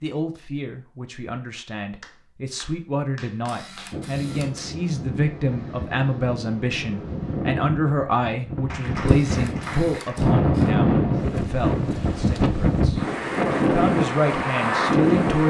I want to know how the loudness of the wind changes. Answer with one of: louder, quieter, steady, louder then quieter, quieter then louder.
louder.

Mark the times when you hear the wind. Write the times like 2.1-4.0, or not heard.
3.9-15.4.